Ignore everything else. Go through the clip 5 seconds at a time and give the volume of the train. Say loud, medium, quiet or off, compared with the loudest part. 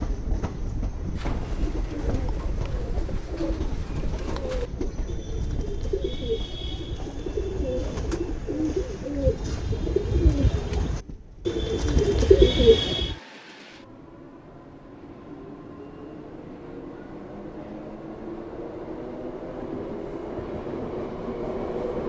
medium, medium, quiet, medium, loud.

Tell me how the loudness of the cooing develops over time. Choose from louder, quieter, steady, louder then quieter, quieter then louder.
louder.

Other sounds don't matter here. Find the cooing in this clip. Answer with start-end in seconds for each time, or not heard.
1.1-13.2.